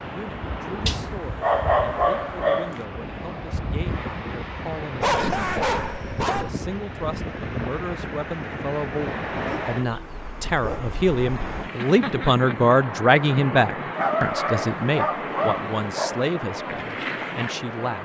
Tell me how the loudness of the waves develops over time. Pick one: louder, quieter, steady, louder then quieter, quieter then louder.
steady.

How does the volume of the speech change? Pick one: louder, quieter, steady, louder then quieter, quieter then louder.
louder then quieter.